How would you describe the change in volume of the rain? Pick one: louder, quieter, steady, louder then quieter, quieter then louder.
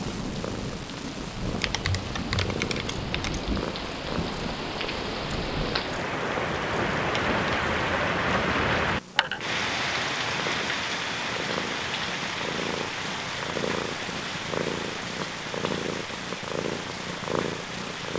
louder then quieter.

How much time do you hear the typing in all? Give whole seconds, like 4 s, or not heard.
2 s.